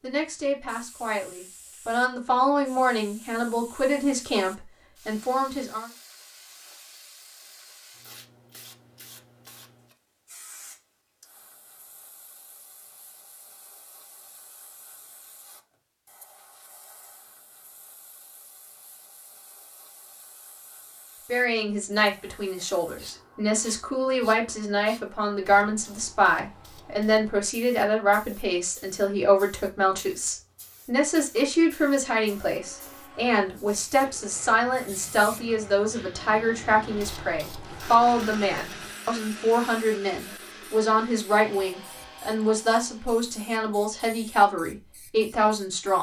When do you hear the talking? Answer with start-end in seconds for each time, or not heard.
0.0-5.9, 21.2-45.9.